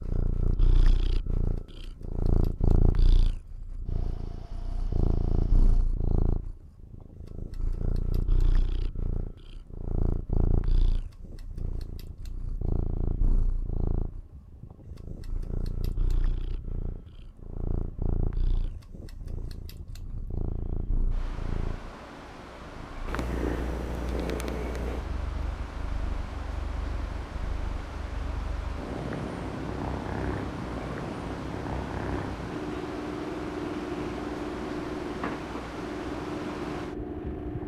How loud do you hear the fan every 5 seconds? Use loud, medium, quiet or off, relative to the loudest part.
quiet, quiet, quiet, quiet, medium, loud, loud, loud.